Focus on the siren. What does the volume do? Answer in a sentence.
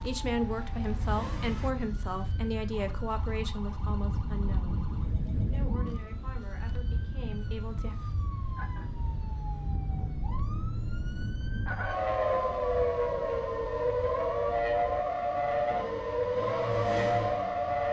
The loudness of the siren goes up.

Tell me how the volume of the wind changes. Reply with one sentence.
The loudness of the wind goes up, then down.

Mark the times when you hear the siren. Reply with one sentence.
The siren can be heard from 0.0 to 17.8 s.